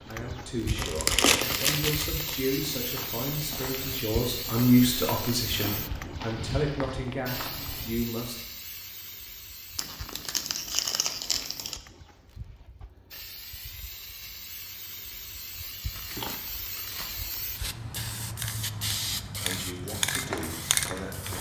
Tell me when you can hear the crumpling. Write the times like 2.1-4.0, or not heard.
0.7-2.4, 9.8-11.8, 15.9-17.4.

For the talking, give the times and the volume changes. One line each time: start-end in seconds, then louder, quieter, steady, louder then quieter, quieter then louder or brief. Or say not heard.
0.1-8.3 louder then quieter
19.4-21.3 brief.